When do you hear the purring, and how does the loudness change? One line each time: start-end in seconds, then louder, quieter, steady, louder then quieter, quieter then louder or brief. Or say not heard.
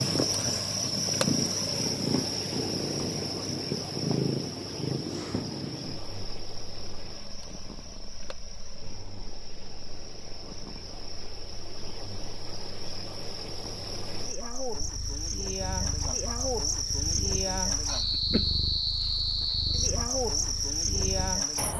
0.0-21.4 quieter then louder.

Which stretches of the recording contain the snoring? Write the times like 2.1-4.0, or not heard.
not heard.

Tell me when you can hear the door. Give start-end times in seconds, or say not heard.
not heard.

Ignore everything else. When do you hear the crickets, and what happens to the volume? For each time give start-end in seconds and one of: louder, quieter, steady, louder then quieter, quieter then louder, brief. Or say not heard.
0.0-21.7 quieter then louder.